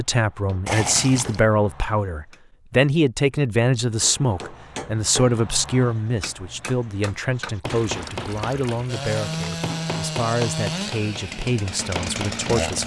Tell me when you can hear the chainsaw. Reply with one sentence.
You can hear the chainsaw from 8.8 to 12.8 s.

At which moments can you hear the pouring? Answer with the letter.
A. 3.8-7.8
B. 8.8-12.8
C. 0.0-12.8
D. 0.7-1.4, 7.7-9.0
D.